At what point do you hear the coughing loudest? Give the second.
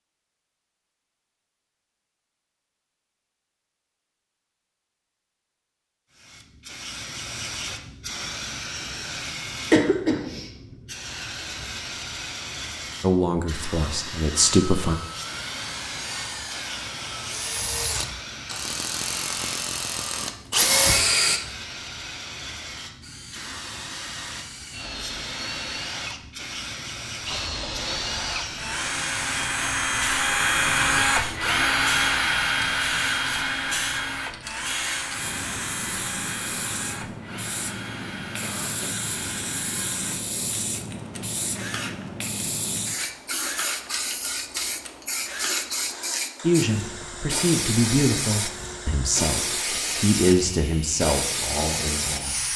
10 s.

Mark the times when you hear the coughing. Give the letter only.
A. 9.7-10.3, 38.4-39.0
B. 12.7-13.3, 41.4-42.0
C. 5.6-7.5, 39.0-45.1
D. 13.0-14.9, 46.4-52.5
A.